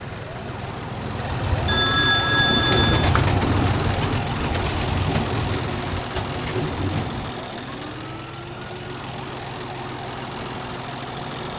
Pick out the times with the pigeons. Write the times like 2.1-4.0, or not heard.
1.2-7.3.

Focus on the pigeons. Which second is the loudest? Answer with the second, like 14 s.
3 s.